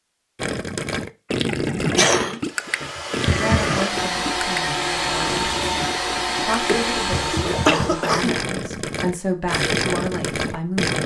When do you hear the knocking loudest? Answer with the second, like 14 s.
3 s.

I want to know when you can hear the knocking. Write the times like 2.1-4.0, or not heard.
2.9-3.8, 7.1-8.0.